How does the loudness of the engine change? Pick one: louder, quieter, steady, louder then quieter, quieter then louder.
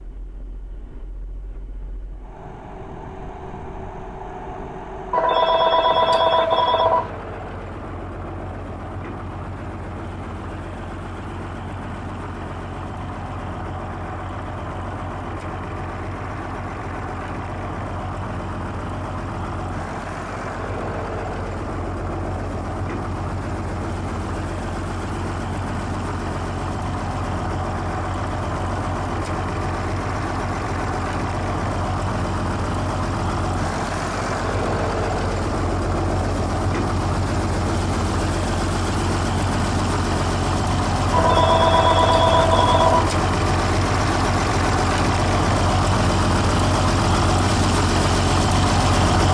louder.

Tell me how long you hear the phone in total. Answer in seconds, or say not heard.
4 s.